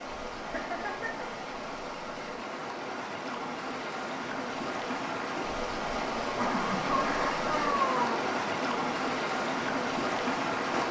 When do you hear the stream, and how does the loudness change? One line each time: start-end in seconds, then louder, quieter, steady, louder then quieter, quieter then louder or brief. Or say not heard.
0.0-10.8 louder.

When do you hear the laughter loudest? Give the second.
8 s.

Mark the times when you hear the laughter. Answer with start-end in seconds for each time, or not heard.
0.3-1.2, 6.3-8.2.